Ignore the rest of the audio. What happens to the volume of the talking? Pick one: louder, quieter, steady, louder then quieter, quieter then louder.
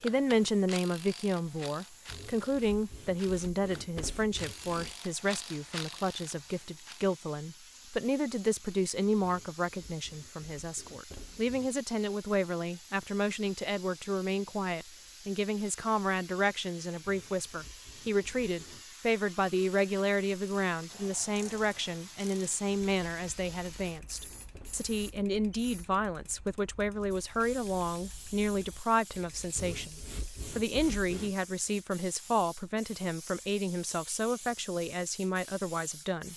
steady.